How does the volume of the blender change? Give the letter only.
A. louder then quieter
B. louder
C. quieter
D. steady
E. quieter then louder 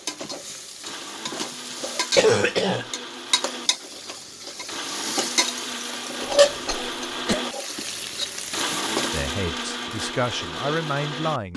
B.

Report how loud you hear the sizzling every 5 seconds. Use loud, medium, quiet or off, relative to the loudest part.
medium, loud, off.